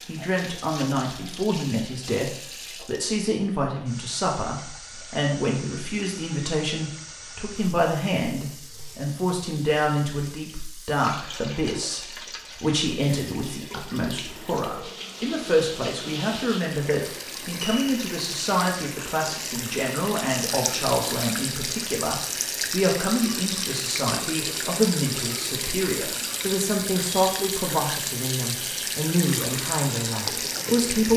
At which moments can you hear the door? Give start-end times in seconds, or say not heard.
not heard.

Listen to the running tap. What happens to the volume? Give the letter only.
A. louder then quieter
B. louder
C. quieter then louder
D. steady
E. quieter
B.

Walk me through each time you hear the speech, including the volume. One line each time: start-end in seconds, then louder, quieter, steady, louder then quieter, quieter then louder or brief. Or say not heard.
0.1-31.1 steady.